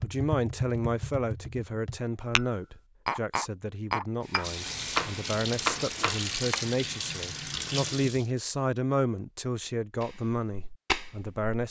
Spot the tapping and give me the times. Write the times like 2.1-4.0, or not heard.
0.0-6.6, 10.0-11.4.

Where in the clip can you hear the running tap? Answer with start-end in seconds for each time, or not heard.
4.2-8.3.